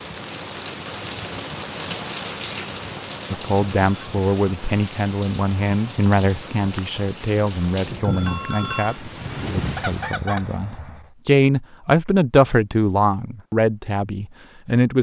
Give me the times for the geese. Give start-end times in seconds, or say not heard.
9.2-11.1.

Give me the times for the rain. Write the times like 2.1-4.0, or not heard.
0.0-10.2.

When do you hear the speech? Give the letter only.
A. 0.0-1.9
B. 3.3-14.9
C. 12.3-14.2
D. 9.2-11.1
B.